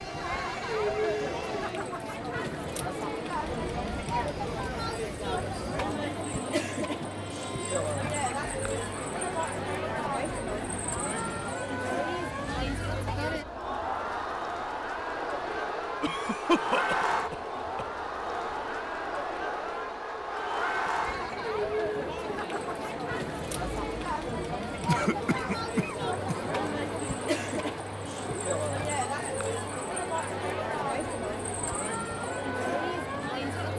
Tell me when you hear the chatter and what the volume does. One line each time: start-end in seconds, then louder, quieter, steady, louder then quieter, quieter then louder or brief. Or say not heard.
0.0-33.7 steady.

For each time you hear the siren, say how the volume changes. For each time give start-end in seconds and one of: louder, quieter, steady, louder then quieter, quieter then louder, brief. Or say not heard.
not heard.